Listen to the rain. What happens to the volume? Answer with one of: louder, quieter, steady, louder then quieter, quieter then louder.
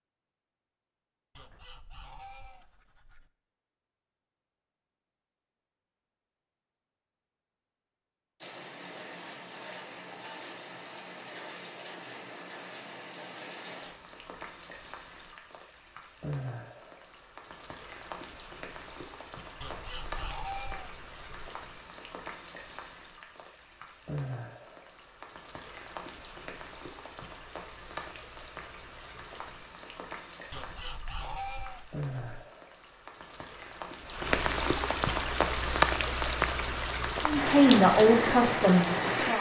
louder.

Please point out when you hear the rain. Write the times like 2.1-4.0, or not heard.
8.4-39.3.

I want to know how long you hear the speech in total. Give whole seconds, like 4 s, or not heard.
2 s.